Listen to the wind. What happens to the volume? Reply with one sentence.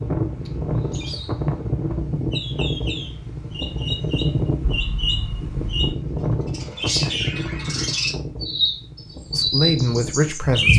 The volume of the wind goes down.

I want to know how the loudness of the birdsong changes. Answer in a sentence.
The volume of the birdsong goes up.